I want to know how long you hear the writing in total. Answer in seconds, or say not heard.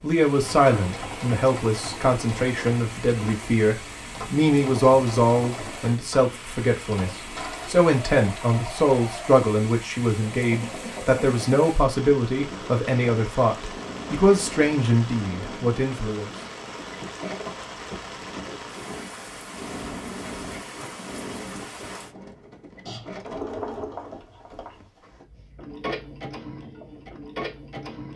2 s.